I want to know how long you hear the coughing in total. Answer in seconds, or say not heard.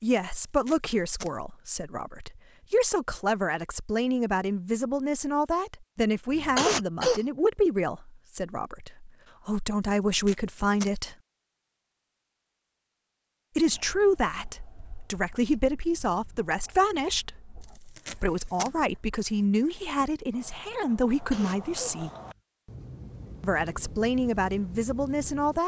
2 s.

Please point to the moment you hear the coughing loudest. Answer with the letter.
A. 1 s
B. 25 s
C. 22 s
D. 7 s
D.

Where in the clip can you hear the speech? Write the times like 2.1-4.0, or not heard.
0.0-11.2, 13.6-22.1, 23.4-25.6.